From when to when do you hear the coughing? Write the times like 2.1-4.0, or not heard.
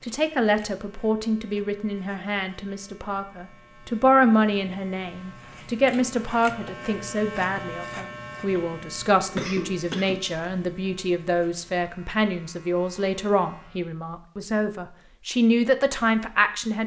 9.2-10.4.